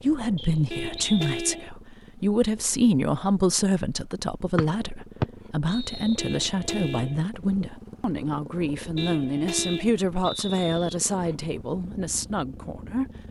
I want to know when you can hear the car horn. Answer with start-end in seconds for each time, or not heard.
0.7-1.7, 6.2-7.2, 8.9-10.0.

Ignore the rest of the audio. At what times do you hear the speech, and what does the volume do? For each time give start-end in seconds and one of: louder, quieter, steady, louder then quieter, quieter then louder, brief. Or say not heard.
0.0-13.1 steady.